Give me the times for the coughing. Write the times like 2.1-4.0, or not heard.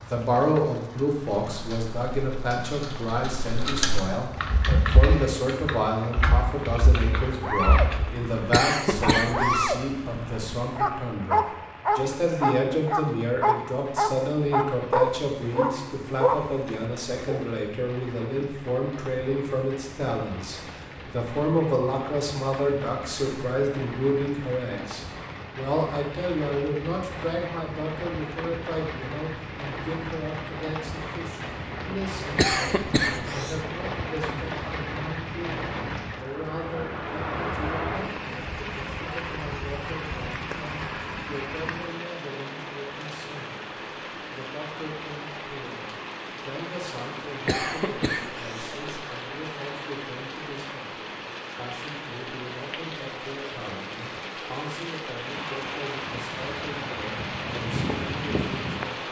8.5-9.8, 32.4-33.6, 47.5-48.9.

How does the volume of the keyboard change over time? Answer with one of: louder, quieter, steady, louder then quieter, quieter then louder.
louder then quieter.